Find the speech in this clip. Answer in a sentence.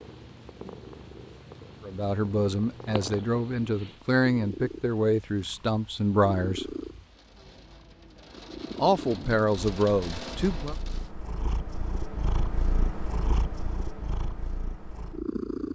You can hear the speech from 1.8 to 6.7 s and from 8.8 to 10.8 s.